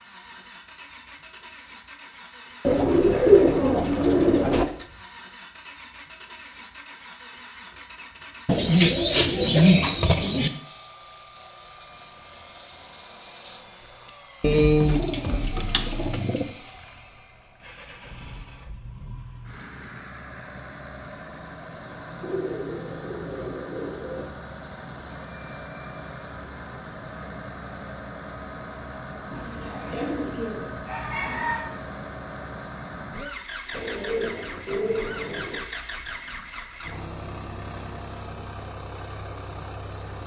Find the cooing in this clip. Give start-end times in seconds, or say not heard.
2.6-4.7, 8.4-10.5, 14.4-16.4, 22.2-24.2, 29.3-31.8, 33.7-35.6.